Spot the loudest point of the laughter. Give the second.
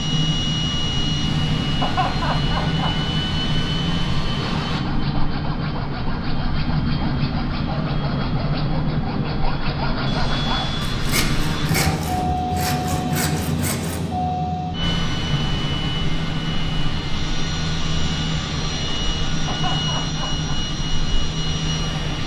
2 s.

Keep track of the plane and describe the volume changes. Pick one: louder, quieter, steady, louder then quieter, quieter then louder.
steady.